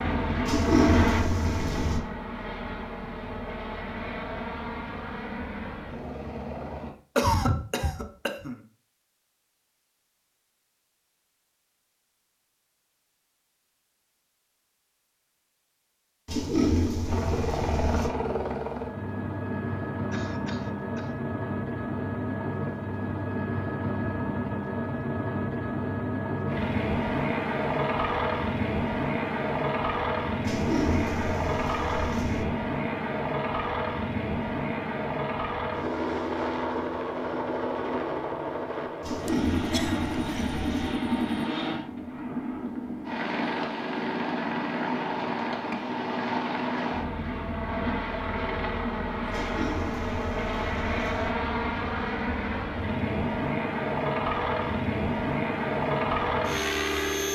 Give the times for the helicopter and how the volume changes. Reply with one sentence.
The helicopter can be heard from 0.0 to 7.0 s, getting quieter; and from 17.1 to 57.2 s, at a steady volume.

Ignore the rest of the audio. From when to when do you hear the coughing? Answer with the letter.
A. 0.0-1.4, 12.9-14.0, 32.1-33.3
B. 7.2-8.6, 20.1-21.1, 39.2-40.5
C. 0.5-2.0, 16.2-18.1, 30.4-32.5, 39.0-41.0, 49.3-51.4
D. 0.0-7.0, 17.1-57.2
B.